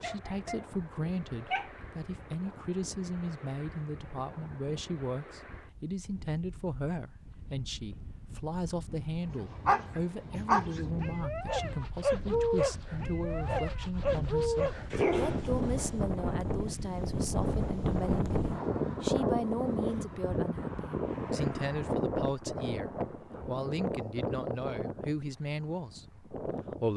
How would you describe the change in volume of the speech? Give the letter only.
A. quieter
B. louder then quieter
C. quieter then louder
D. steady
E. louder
D.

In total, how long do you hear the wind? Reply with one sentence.
The wind can be heard for 27 seconds in total.